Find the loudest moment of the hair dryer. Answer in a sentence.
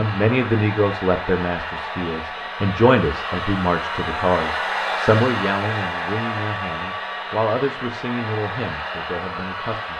The loudest moment of the hair dryer is at 5 seconds.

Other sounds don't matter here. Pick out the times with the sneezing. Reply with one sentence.
The sneezing can't be heard in this clip.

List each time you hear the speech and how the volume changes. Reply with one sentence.
You can hear the speech from 0.0 to 9.9 s, getting quieter.